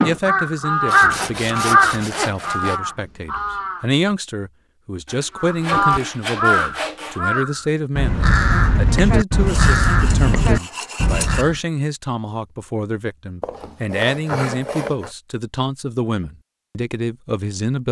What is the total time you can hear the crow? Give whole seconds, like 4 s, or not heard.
10 s.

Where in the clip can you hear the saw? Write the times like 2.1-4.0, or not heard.
0.8-2.8, 5.0-7.2, 9.4-11.4, 13.4-15.1.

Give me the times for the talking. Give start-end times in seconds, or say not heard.
0.0-17.8.